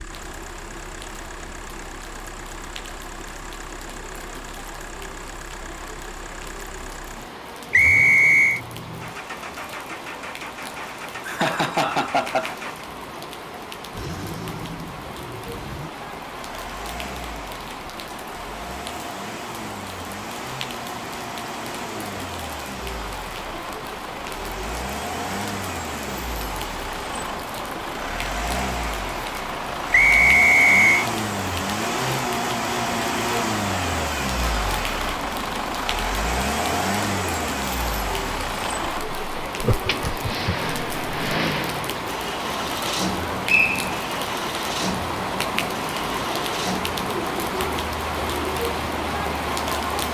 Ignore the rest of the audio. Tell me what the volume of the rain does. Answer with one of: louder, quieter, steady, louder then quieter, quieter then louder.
louder.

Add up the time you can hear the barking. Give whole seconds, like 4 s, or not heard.
not heard.